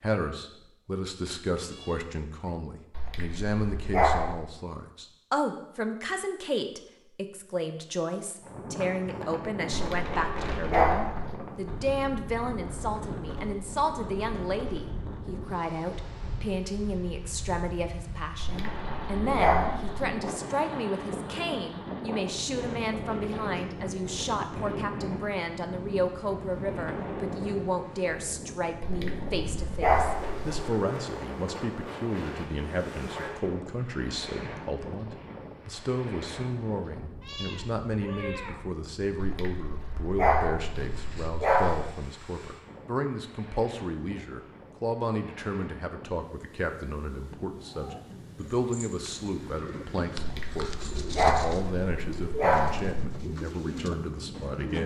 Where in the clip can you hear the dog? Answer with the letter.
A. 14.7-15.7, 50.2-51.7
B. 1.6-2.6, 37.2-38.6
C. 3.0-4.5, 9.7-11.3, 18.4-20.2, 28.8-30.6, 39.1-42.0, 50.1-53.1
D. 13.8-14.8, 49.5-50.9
C.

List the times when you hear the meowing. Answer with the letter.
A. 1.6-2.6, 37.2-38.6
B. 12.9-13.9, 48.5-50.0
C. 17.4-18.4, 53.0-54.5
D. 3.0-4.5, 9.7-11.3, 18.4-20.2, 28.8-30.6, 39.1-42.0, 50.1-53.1
A.